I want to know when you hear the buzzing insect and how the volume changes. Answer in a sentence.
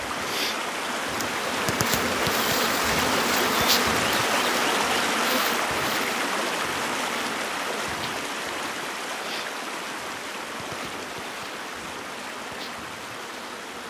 You can hear the buzzing insect from 0.0 to 13.8 s, getting quieter.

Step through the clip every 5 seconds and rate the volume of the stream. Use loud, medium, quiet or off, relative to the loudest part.
loud, loud, medium.